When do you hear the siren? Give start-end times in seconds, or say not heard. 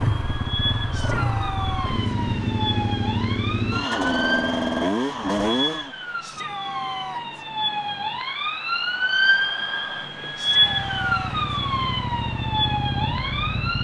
0.0-13.7.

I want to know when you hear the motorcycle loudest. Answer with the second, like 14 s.
5 s.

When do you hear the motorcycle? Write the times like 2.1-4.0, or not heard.
0.0-5.9, 10.4-13.7.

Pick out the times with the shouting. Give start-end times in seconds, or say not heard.
0.9-2.1, 6.2-7.5, 10.3-11.5.